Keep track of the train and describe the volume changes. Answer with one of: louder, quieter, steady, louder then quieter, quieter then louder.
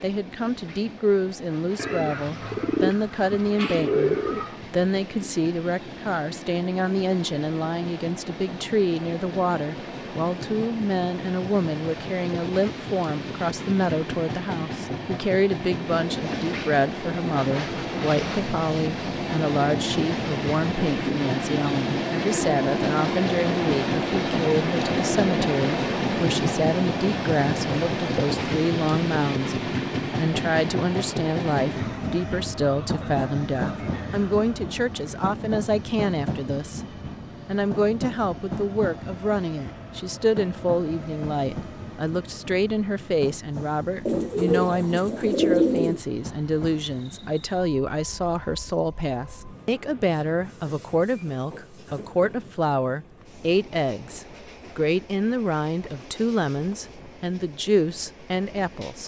louder then quieter.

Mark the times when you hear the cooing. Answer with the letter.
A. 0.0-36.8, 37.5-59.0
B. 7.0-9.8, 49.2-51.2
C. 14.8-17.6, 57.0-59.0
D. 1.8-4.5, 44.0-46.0
D.